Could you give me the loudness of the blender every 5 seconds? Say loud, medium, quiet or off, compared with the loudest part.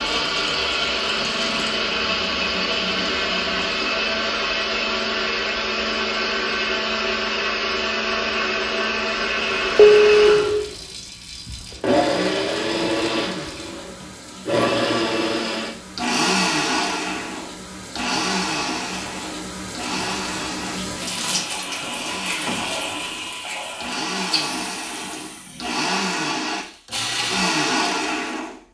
loud, loud, loud, loud, medium, loud.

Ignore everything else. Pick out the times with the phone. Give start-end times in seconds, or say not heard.
9.8-10.5.